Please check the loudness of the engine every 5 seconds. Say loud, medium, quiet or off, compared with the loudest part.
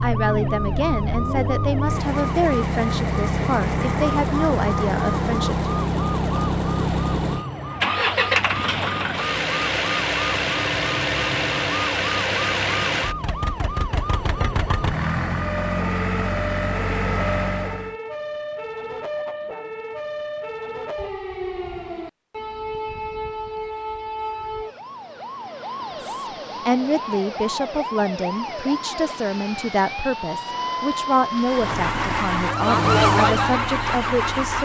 loud, loud, loud, loud, off, off, loud.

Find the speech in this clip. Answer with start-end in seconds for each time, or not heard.
0.0-5.7, 25.9-34.6.